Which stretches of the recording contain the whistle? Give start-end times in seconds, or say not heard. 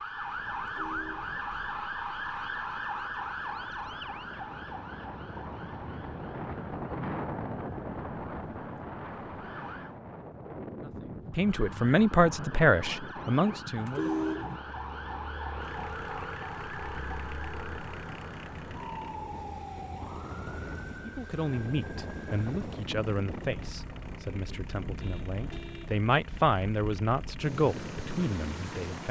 not heard.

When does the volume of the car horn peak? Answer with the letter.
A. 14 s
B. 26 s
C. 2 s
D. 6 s
A.